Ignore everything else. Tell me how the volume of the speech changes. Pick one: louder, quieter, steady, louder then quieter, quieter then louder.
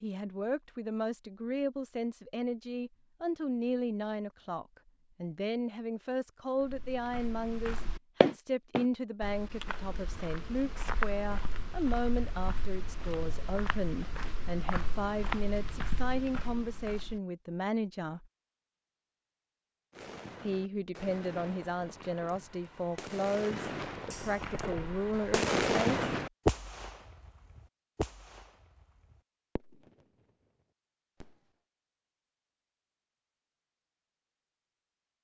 steady.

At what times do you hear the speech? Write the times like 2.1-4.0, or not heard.
0.0-18.3, 20.4-26.1.